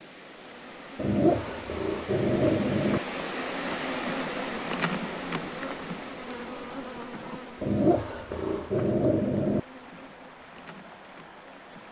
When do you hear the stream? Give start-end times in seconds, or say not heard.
0.0-11.8.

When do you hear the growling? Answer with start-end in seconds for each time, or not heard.
0.9-3.0, 7.6-9.6.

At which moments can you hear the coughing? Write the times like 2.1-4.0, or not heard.
not heard.